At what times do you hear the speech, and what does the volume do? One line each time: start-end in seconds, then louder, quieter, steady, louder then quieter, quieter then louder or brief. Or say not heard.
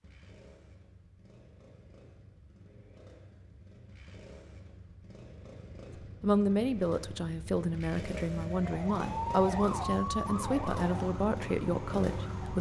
6.0-12.5 steady.